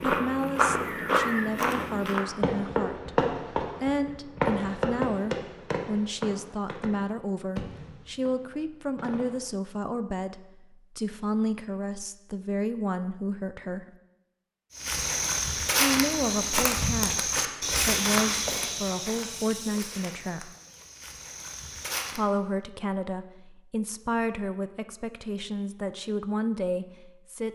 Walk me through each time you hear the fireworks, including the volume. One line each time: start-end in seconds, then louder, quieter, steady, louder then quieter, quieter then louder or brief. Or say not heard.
2.2-9.5 quieter.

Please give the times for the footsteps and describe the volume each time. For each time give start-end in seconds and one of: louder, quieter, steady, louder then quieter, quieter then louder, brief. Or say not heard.
0.0-2.2 brief
14.8-22.2 quieter.